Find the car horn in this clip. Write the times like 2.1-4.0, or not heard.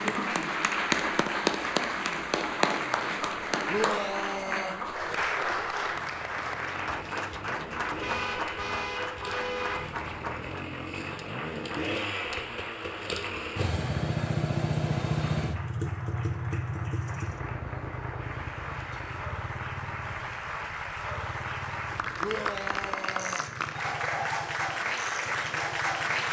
8.0-9.9.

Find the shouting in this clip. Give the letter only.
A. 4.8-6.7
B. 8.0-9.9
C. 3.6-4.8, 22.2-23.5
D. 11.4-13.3
C.